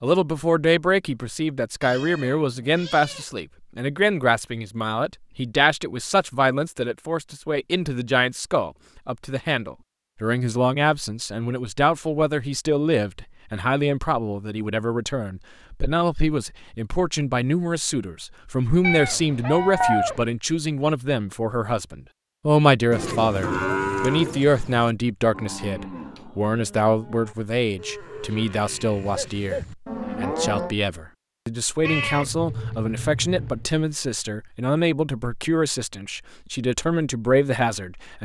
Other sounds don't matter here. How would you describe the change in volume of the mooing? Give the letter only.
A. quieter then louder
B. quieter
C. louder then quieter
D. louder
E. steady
A.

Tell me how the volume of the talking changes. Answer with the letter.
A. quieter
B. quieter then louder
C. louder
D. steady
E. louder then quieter
D.